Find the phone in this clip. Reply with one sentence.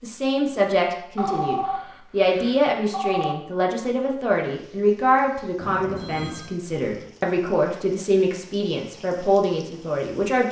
You can hear the phone from 1.1 to 3.4 s and from 5.6 to 6.5 s.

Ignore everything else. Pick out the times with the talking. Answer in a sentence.
You can hear the talking from 0.0 to 10.4 s.